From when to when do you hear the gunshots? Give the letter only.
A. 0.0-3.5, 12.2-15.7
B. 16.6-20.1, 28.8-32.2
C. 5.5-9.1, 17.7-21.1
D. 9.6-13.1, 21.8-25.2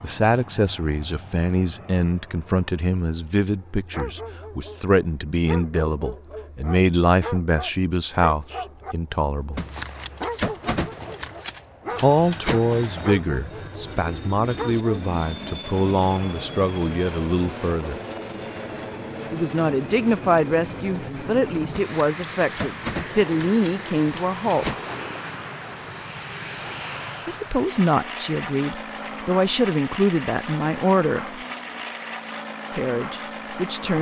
D.